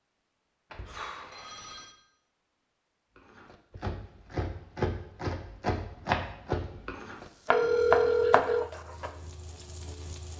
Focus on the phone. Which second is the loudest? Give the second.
8 s.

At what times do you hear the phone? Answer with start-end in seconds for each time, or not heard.
0.7-1.9, 7.5-8.7.